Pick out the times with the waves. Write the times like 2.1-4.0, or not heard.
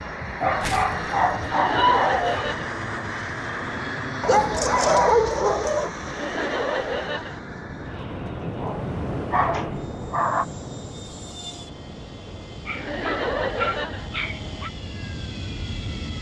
5.8-16.1.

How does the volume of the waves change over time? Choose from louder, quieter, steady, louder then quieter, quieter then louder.
louder then quieter.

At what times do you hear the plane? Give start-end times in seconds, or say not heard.
0.0-16.1.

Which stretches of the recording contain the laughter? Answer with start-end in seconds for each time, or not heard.
1.4-2.8, 6.0-7.4, 12.8-14.1.